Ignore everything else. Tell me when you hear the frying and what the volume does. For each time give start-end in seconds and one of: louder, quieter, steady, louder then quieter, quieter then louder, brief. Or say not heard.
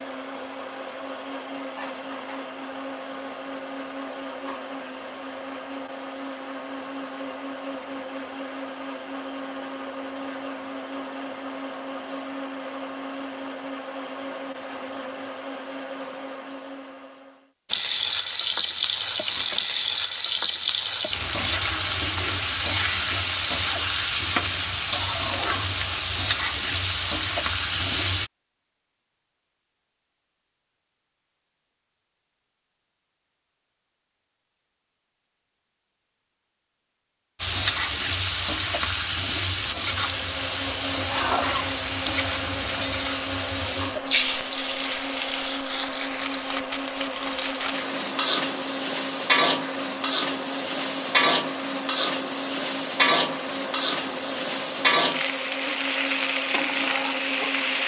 17.7-28.3 steady
37.4-57.8 steady.